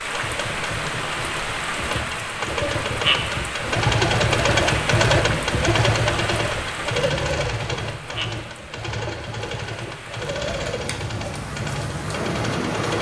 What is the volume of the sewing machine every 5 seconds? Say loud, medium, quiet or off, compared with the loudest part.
loud, loud, medium.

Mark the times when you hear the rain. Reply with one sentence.
The rain can be heard from 0.0 to 12.9 s.